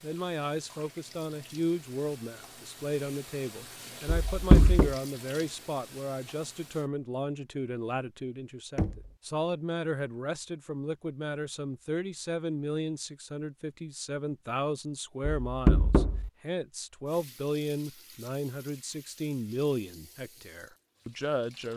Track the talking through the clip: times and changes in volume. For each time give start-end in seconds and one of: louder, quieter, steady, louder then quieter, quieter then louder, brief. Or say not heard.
0.0-21.7 steady.